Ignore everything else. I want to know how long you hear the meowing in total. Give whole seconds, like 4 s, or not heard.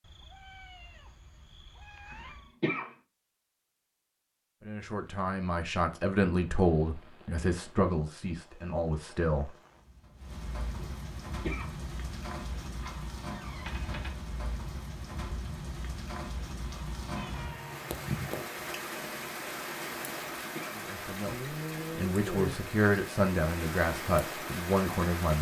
5 s.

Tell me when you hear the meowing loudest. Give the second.
18 s.